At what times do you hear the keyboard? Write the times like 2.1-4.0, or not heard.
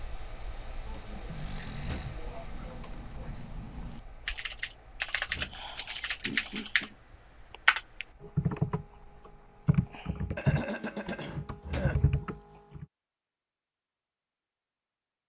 2.1-6.9, 7.5-12.8.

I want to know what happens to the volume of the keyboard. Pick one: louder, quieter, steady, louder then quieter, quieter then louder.
louder.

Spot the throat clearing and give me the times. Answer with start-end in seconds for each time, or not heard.
0.8-3.5, 6.2-7.0, 10.3-12.0.